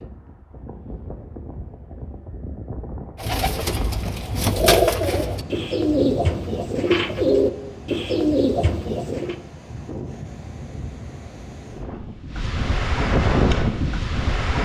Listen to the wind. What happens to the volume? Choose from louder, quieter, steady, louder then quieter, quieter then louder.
louder.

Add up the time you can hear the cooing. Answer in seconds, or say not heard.
6 s.